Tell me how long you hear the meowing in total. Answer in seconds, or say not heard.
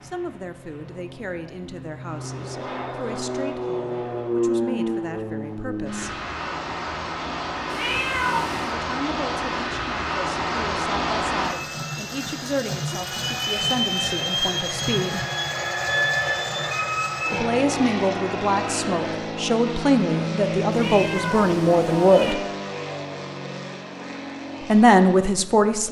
3 s.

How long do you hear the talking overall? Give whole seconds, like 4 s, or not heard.
19 s.